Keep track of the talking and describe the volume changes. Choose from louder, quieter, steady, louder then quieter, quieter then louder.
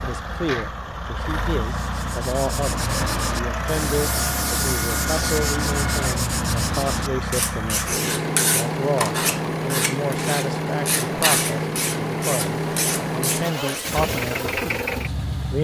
steady.